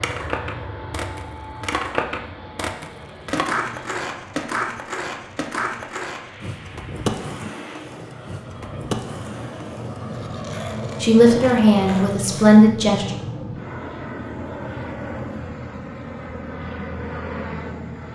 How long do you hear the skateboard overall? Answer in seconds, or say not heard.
13 s.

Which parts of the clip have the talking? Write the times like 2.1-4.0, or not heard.
11.0-13.1.